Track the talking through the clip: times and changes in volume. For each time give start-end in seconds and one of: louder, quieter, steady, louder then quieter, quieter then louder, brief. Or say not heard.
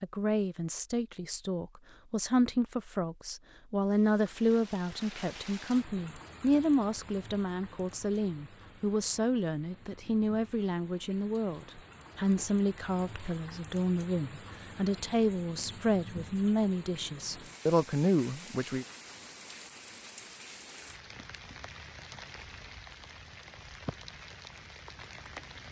0.0-18.9 steady.